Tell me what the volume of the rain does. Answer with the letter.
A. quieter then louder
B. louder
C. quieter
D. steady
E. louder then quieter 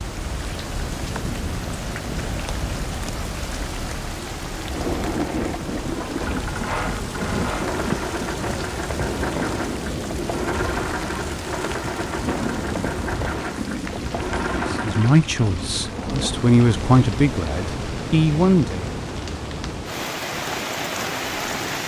D.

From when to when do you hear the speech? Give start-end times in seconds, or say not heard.
14.7-18.9.